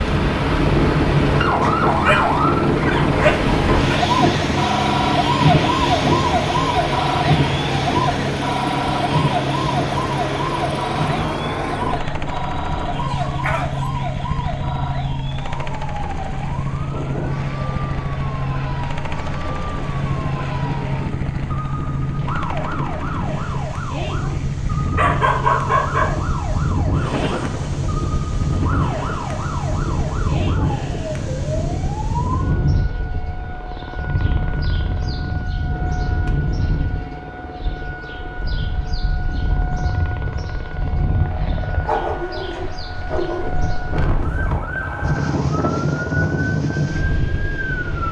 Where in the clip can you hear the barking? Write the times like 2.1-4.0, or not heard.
1.6-4.0, 12.9-13.9, 24.9-26.1, 41.9-43.7.